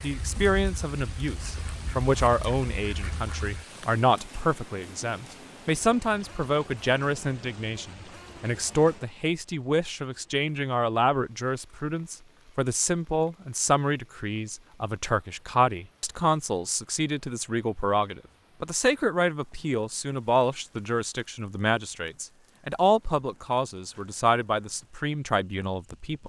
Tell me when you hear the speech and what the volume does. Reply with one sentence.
The speech can be heard from 0.0 to 26.2 s, at a steady volume.